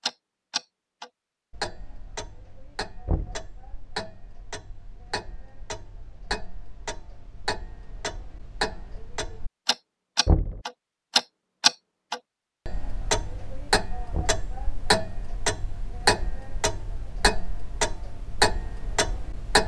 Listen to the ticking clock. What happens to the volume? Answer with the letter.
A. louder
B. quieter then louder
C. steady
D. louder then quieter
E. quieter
A.